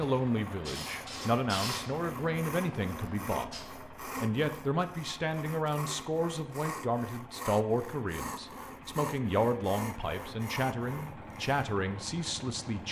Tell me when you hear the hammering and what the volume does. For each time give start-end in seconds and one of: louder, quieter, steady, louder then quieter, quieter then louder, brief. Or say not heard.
not heard.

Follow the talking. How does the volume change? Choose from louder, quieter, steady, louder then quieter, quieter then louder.
steady.